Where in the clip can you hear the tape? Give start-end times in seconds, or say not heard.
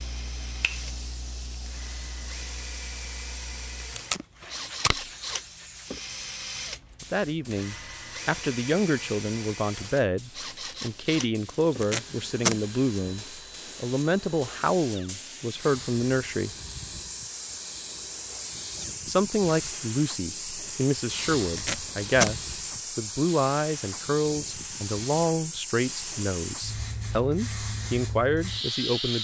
4.0-5.0, 11.6-12.6, 21.4-22.4.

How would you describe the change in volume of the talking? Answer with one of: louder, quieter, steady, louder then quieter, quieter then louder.
steady.